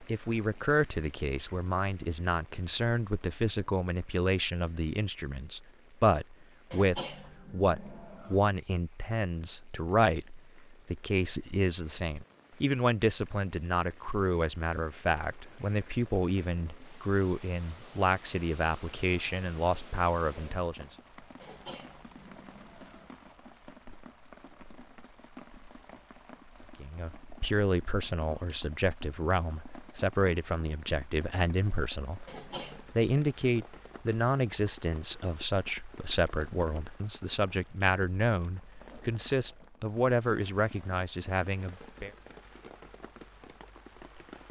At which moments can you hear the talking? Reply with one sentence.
You can hear the talking from 0.0 to 20.9 s and from 26.8 to 42.1 s.